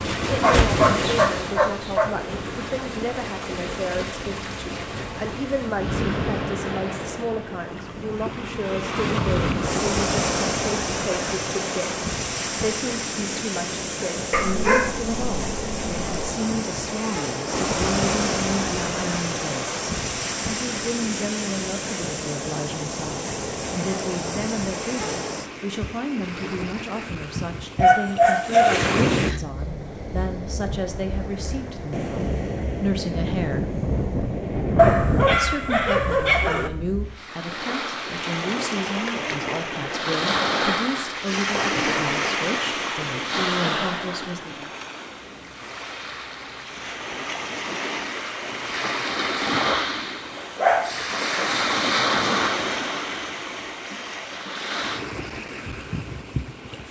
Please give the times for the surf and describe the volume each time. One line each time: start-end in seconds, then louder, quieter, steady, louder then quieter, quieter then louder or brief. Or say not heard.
0.0-56.8 steady.